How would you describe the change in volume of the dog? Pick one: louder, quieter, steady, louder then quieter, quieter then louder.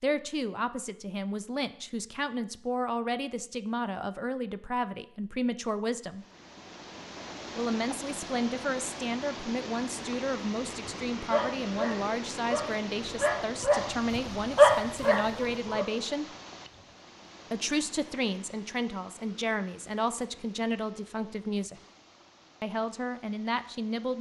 louder then quieter.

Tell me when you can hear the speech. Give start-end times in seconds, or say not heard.
0.0-6.2, 7.5-16.2, 17.5-21.8, 22.6-24.1.